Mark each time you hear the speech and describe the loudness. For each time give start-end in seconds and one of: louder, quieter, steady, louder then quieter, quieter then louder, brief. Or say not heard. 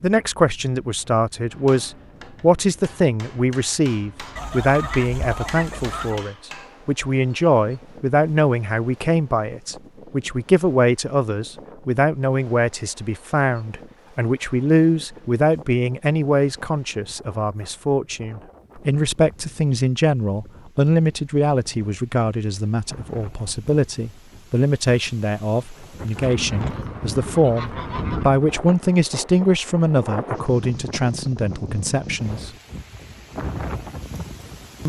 0.0-32.5 steady.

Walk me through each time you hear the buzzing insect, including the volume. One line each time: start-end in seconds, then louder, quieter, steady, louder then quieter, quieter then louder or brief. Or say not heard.
not heard.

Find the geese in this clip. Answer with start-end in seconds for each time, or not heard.
4.3-6.2, 26.2-28.2.